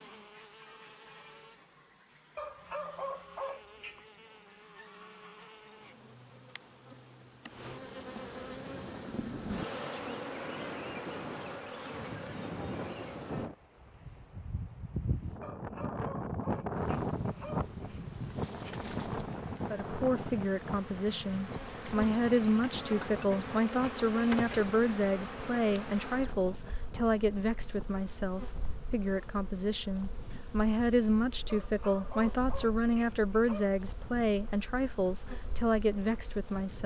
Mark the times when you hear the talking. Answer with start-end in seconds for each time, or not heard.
19.7-36.8.